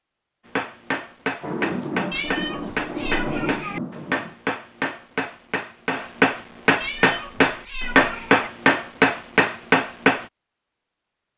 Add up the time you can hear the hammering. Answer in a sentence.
The hammering can be heard for 10 seconds in total.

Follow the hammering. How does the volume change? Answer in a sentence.
The volume of the hammering goes up.